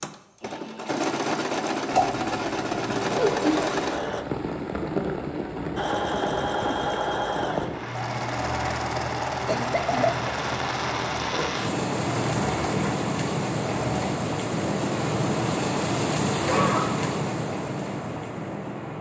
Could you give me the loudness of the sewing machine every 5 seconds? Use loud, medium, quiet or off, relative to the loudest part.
loud, loud, medium, off.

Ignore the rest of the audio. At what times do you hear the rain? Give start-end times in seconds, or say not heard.
3.9-18.9.